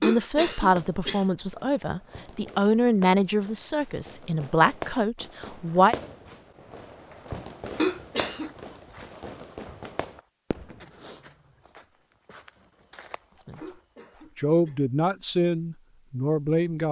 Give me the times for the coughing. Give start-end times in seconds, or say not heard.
0.0-1.2, 7.8-8.5, 13.6-14.8.